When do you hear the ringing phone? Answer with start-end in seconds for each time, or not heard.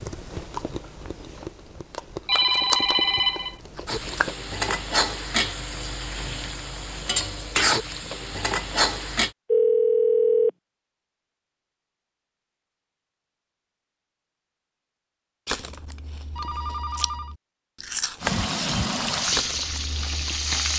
2.2-3.5, 9.5-10.5, 16.4-17.4.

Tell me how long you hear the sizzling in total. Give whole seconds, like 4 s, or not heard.
8 s.